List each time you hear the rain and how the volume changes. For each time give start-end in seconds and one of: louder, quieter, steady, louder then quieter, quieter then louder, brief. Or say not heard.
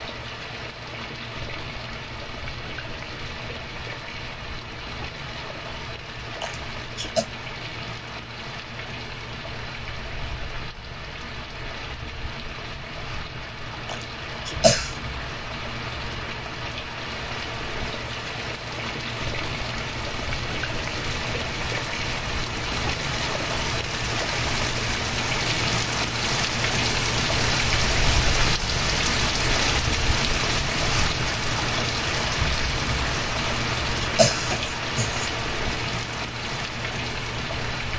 0.0-37.9 louder.